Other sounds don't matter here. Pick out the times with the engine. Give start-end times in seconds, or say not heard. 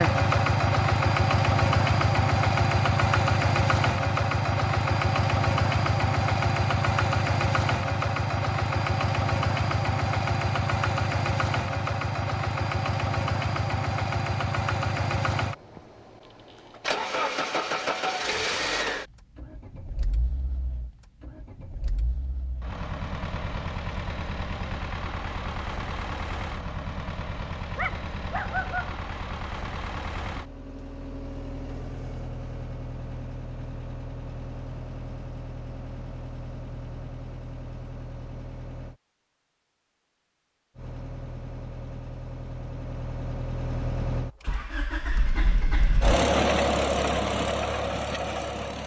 0.0-39.0, 40.8-48.8.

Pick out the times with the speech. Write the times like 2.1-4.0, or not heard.
not heard.